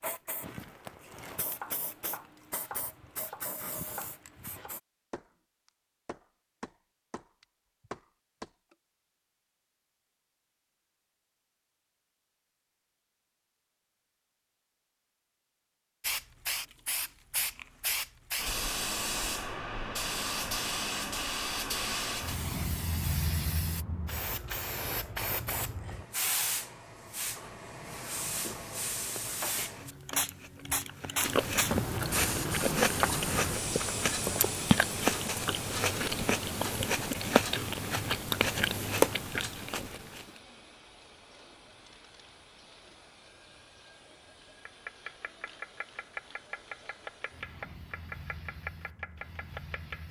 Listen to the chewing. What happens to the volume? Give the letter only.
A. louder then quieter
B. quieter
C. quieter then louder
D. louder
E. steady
D.